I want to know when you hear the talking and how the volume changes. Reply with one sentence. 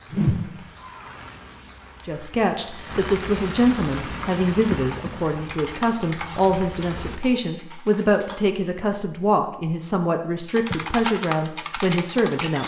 You can hear the talking from 2.0 to 12.6 s, at a steady volume.